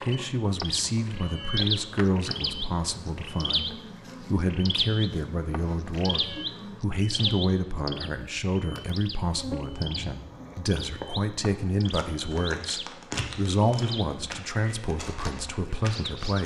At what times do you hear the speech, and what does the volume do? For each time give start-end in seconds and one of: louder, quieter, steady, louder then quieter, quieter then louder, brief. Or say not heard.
0.0-16.4 steady.